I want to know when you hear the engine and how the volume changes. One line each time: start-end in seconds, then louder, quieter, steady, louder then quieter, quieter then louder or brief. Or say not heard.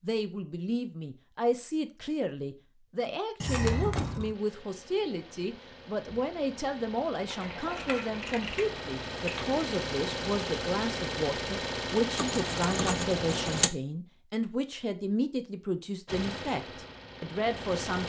4.3-13.7 louder
16.1-18.0 brief.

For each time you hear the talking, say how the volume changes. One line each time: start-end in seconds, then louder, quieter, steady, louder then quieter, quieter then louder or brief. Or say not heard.
0.0-18.0 steady.